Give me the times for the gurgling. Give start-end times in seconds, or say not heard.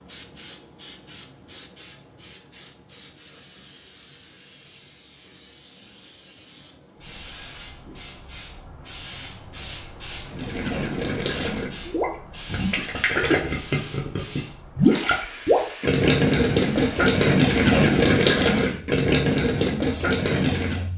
10.2-20.9.